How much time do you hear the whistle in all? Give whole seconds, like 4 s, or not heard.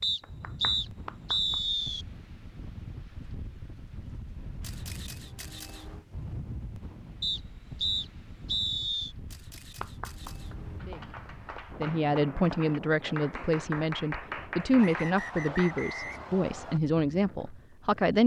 6 s.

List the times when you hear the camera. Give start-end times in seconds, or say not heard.
4.6-6.0, 9.2-10.8.